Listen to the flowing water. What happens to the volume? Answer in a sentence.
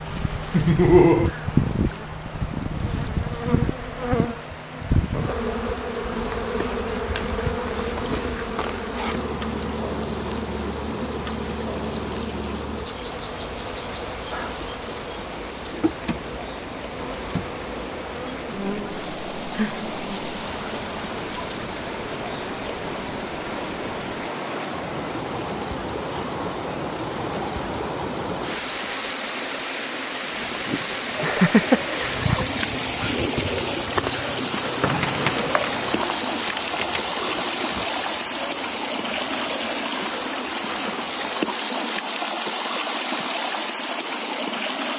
The volume of the flowing water goes up.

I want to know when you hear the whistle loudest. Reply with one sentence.
The loudest moment of the whistle is at 35 seconds.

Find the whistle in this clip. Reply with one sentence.
The whistle can be heard from 34.8 to 36.2 s.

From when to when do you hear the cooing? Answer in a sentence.
The cooing can be heard from 31.1 to 41.7 s.